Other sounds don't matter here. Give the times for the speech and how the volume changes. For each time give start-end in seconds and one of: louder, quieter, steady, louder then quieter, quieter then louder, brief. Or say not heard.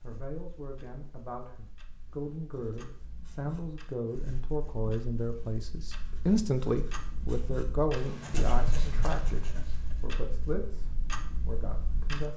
0.0-12.3 louder then quieter.